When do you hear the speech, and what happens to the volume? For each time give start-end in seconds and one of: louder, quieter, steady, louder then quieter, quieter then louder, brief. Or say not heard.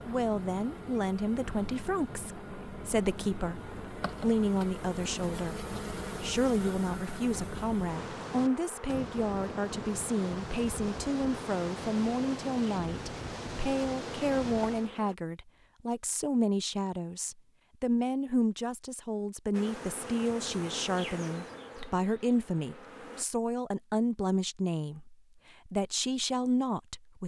0.1-27.2 steady.